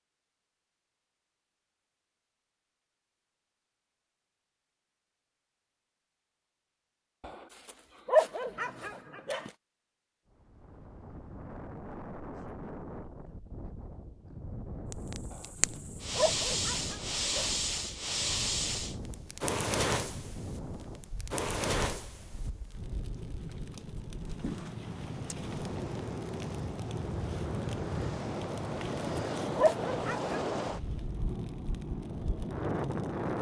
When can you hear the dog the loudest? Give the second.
8 s.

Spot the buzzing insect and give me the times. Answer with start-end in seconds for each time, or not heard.
not heard.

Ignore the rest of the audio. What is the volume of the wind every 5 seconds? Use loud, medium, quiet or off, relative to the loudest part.
off, off, medium, medium, medium, loud, loud.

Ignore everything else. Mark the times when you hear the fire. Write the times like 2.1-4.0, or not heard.
14.9-33.3.